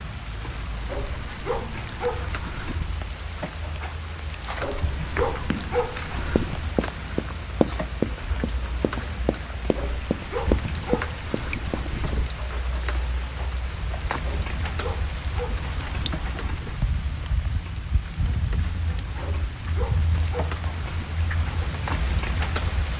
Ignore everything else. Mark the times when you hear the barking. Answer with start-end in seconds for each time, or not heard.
0.8-2.9, 4.6-6.8, 9.8-12.3, 14.2-16.9, 19.2-21.2.